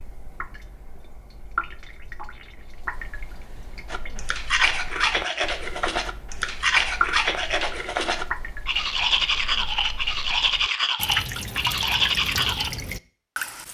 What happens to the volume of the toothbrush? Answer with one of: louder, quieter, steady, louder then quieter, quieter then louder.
steady.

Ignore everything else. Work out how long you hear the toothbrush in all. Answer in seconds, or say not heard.
9 s.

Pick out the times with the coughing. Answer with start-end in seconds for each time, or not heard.
not heard.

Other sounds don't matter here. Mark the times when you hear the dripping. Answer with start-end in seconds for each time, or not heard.
0.0-13.6.